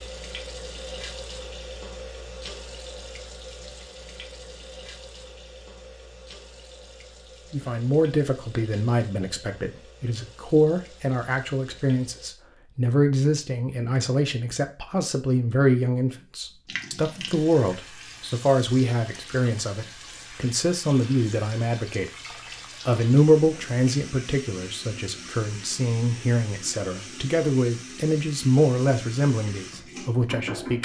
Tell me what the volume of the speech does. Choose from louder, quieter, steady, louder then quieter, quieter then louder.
steady.